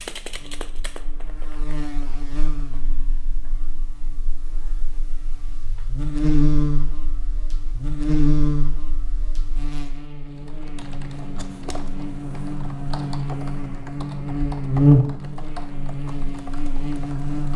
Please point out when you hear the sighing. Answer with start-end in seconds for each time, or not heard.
not heard.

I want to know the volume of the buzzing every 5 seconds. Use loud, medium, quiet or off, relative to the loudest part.
quiet, loud, loud, medium.